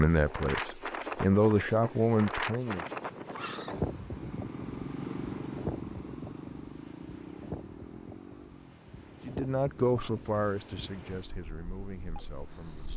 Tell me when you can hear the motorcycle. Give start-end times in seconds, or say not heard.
2.7-12.9.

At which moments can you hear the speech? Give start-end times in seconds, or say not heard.
0.0-2.9, 9.2-12.9.